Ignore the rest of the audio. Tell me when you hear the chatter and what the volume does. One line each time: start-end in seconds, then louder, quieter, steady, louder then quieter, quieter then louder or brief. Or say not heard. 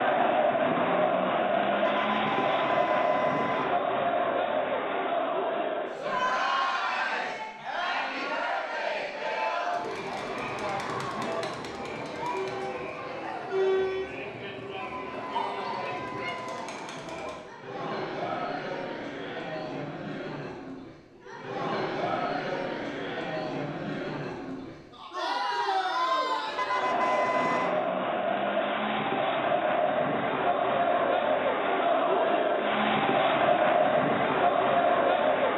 0.0-35.5 quieter then louder.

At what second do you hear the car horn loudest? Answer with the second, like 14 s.
27 s.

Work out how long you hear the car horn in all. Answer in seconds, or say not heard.
5 s.